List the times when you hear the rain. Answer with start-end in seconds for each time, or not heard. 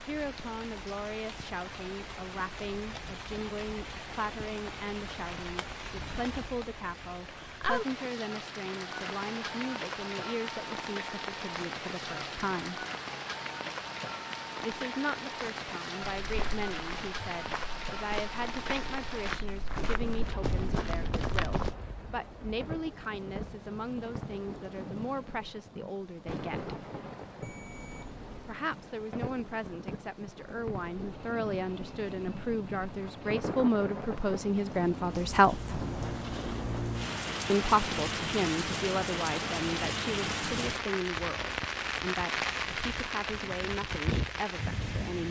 0.0-45.2.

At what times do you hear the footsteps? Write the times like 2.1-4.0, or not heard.
16.2-21.8.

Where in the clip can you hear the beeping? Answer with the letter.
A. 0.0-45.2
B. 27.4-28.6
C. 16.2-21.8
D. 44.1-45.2
B.